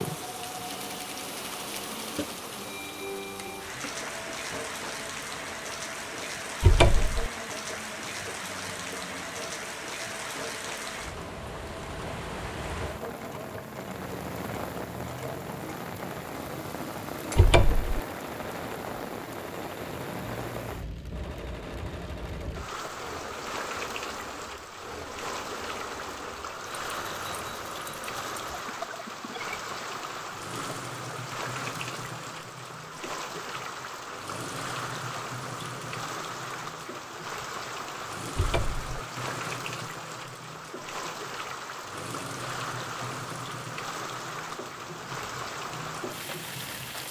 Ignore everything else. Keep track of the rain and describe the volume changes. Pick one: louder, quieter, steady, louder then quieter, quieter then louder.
steady.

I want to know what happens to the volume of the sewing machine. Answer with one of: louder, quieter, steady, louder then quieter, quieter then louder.
steady.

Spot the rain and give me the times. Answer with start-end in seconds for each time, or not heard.
0.0-47.0.